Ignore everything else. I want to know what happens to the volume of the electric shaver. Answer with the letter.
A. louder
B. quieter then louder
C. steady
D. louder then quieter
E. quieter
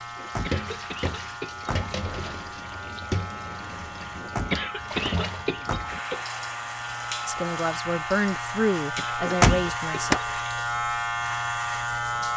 A.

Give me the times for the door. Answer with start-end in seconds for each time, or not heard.
0.1-1.9, 4.2-6.0, 9.2-10.2.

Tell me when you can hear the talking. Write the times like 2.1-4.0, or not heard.
7.2-10.2.